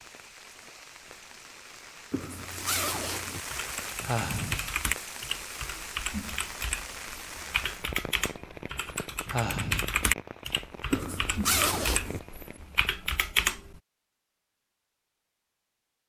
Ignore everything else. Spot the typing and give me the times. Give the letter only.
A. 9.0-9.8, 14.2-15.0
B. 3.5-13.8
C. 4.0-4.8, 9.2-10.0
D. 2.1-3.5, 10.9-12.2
B.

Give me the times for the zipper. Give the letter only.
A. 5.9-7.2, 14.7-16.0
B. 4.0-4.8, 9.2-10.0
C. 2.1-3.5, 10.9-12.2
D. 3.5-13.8
C.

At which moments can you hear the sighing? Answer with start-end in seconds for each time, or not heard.
4.0-4.8, 9.2-10.0.